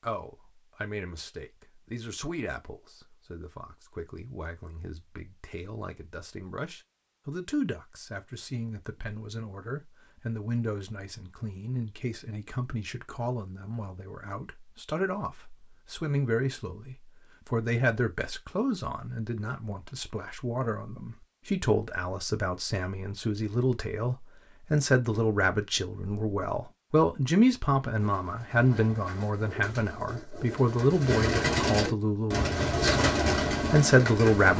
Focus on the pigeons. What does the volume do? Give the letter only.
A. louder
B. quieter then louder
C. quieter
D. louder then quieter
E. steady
A.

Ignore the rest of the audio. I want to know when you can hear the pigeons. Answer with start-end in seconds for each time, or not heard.
27.9-34.5.